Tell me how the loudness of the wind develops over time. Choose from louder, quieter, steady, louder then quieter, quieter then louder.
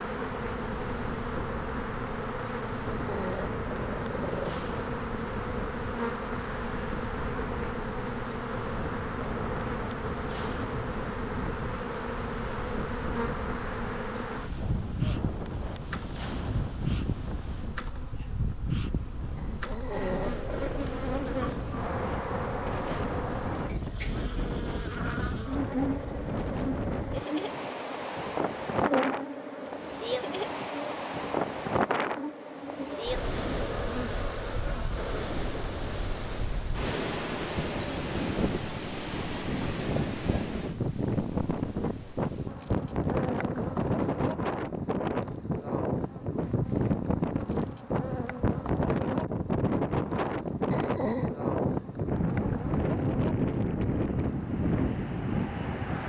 louder.